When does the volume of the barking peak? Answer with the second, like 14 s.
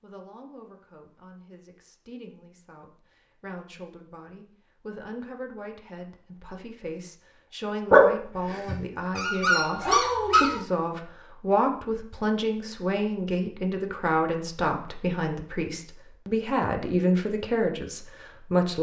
8 s.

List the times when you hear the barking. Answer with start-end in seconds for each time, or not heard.
7.9-10.6.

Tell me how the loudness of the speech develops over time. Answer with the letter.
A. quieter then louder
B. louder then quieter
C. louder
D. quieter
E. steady
C.